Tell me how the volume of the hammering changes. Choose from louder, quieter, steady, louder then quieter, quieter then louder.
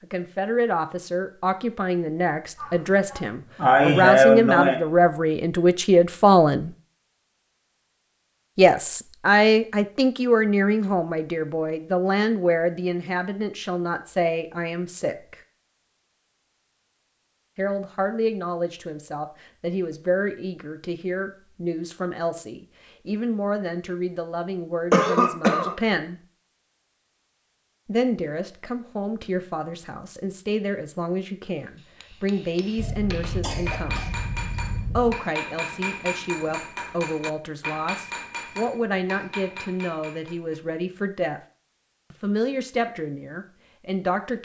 louder then quieter.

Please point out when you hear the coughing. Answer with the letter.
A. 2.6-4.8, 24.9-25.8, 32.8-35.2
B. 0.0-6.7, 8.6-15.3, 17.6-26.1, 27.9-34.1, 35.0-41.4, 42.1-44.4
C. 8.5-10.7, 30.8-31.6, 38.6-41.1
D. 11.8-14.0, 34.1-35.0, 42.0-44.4
A.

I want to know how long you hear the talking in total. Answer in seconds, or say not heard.
37 s.